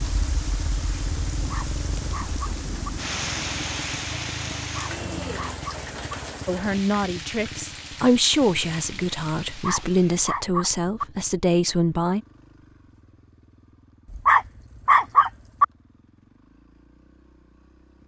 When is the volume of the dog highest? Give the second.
15 s.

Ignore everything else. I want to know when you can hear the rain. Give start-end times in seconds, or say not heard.
0.0-10.3.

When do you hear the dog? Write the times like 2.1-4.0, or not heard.
1.4-2.9, 4.6-6.2, 9.5-11.1, 14.1-15.7.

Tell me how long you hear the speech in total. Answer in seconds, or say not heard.
6 s.